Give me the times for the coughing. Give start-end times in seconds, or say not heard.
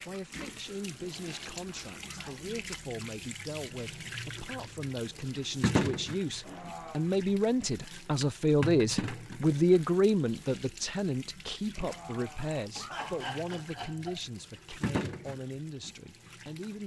1.1-2.5, 6.4-7.1, 11.8-14.2.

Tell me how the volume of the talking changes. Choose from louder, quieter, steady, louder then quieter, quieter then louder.
louder then quieter.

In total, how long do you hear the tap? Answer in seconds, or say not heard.
17 s.